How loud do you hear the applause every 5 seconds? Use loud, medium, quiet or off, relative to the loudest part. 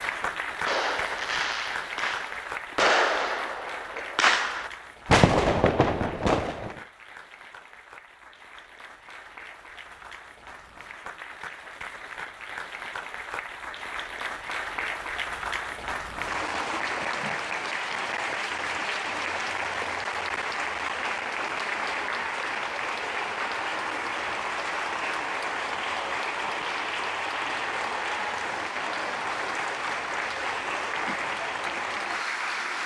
medium, quiet, medium, loud, loud, loud, loud.